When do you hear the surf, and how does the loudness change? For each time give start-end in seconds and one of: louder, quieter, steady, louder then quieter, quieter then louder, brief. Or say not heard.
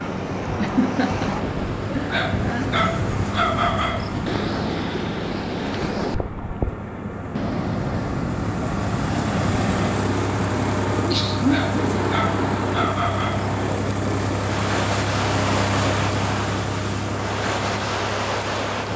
0.0-18.9 steady.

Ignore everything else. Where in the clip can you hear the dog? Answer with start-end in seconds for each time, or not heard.
2.1-4.1, 11.4-13.5.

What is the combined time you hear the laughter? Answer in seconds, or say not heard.
3 s.